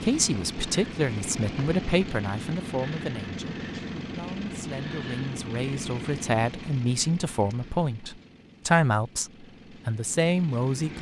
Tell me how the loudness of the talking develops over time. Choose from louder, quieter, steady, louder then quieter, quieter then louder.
quieter then louder.